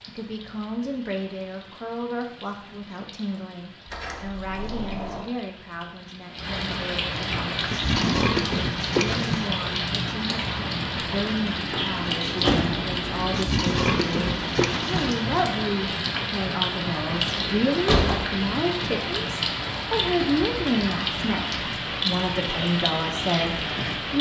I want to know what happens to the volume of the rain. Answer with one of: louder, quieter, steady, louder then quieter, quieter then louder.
louder.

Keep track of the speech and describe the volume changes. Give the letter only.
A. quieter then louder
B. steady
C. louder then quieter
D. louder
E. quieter
D.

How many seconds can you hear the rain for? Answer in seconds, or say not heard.
24 s.